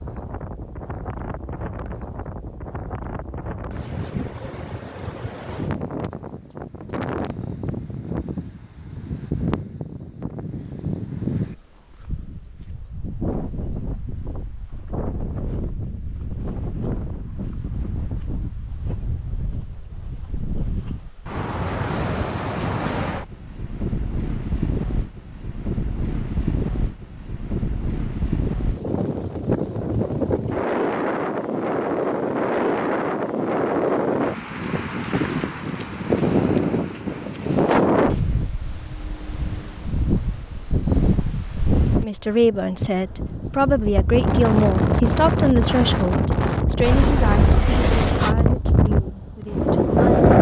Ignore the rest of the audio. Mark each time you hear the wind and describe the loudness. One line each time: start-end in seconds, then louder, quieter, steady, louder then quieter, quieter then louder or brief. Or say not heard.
0.0-50.3 louder.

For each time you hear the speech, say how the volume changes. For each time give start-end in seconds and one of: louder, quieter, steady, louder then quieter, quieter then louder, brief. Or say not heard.
42.0-50.2 quieter.